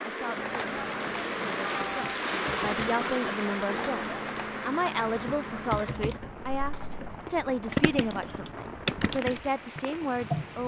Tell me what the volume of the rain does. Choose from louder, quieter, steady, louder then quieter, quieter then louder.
quieter.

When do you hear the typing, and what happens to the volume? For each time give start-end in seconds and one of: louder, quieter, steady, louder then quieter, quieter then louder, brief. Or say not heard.
0.3-10.6 louder.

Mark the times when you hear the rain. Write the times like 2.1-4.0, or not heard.
0.0-10.6.